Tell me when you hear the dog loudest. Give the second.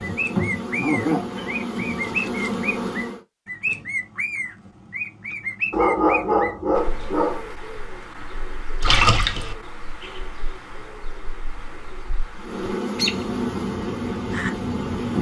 6 s.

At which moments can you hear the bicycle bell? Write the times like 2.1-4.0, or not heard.
not heard.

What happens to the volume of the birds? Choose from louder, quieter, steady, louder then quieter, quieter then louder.
quieter then louder.